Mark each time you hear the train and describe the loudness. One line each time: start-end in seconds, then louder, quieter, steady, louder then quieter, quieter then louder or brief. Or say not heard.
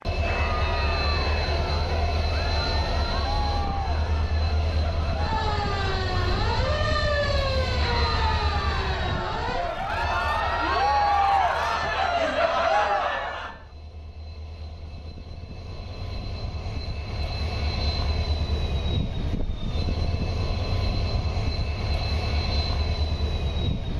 0.0-23.9 quieter then louder.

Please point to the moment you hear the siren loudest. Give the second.
7 s.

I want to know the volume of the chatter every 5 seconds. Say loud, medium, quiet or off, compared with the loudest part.
medium, medium, loud, off, off.